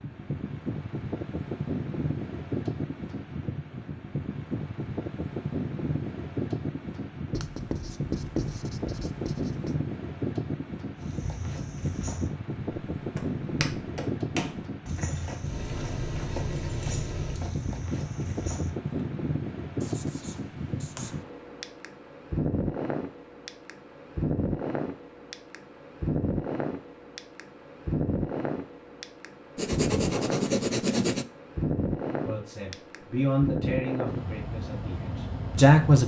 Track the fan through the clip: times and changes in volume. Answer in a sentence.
You can hear the fan from 0.0 to 36.0 s, at a steady volume.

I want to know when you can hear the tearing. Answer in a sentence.
You can't hear the tearing here.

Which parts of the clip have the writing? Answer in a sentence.
You can hear the writing from 7.3 to 9.8 s, from 19.8 to 21.1 s and from 29.6 to 31.2 s.